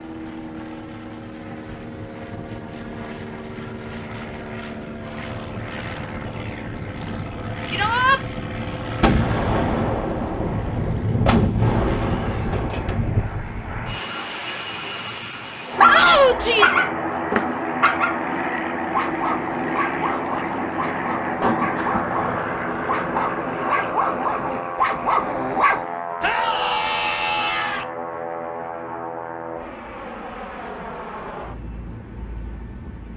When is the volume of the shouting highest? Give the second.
16 s.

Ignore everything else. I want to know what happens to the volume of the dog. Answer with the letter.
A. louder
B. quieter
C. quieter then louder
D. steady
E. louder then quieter
C.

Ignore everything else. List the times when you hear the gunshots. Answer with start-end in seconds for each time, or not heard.
9.0-13.4, 21.4-23.2.